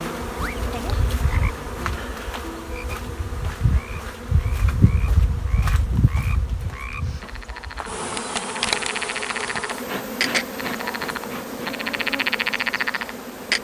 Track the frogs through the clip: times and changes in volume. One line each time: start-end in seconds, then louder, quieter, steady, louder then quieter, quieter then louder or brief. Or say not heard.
0.0-13.5 quieter then louder.